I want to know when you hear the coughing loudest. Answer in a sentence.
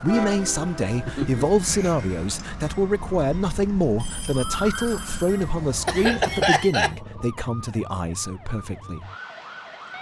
The volume of the coughing peaks at 6 seconds.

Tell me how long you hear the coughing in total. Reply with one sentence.
The coughing can be heard for 2 seconds in total.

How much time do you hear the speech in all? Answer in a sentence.
The speech can be heard for 9 seconds in total.